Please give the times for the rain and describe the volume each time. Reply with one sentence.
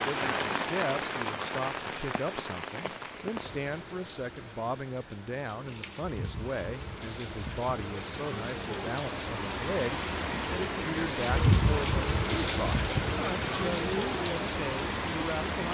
The rain can be heard from 0.0 to 15.6 s, getting quieter then louder.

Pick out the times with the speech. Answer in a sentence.
The speech can be heard from 0.0 to 15.6 s.